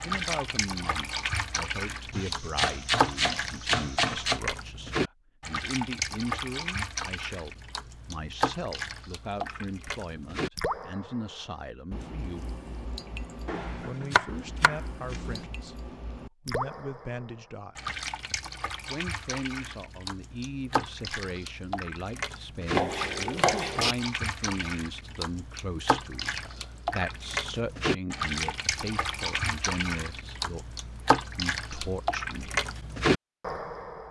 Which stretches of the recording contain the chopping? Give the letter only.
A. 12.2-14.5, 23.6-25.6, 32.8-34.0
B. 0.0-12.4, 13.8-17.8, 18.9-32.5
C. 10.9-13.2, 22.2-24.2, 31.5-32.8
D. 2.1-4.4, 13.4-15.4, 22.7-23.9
D.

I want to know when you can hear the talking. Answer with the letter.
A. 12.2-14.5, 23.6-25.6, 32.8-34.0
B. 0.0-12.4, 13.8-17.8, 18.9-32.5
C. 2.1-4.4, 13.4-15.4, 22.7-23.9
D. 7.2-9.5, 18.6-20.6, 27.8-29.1
B.